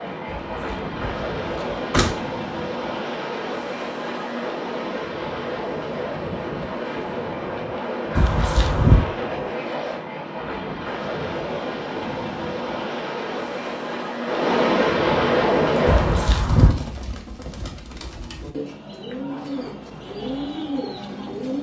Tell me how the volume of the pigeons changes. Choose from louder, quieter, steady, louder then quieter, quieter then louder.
louder.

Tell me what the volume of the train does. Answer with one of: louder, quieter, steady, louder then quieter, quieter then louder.
louder.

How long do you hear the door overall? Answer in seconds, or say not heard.
4 s.